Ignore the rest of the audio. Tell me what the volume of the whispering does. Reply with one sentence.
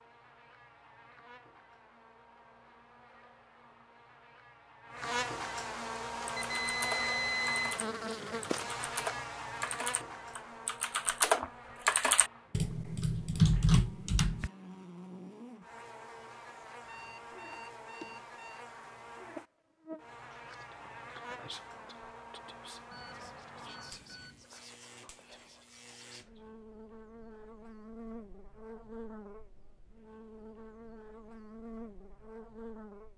The volume of the whispering goes down.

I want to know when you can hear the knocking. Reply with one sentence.
You can't hear the knocking here.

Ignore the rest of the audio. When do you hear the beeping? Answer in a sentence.
You can hear the beeping from 6.3 to 7.8 s, from 16.9 to 18.6 s and from 22.9 to 24.4 s.